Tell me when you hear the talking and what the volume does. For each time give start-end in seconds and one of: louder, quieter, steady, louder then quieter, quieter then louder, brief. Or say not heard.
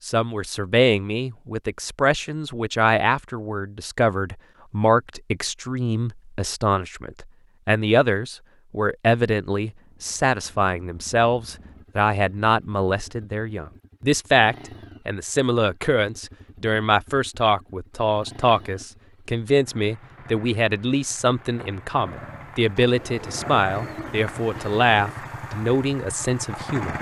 0.1-26.9 steady.